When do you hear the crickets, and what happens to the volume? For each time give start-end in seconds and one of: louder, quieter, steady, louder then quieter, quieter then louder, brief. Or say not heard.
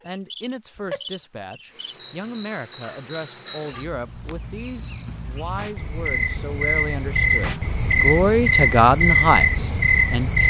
0.0-10.4 louder.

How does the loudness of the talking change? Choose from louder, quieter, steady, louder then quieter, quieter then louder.
louder.